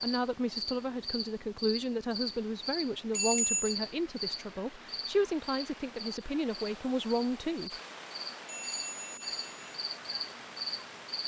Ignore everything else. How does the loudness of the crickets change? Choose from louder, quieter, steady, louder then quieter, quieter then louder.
quieter then louder.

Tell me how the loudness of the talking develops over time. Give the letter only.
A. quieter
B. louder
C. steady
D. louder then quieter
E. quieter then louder
C.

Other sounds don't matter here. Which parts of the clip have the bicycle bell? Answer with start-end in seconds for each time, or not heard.
3.1-3.8, 8.4-9.5.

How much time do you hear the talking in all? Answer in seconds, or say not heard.
8 s.